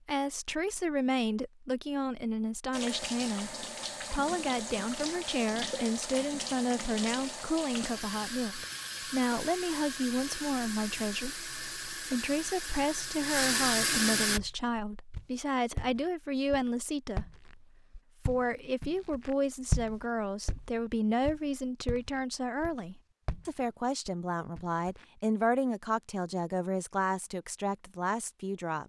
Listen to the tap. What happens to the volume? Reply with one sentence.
The volume of the tap goes up.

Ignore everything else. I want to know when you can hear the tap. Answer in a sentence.
The tap can be heard from 2.7 to 14.4 s.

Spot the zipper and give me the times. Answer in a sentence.
You can't hear the zipper here.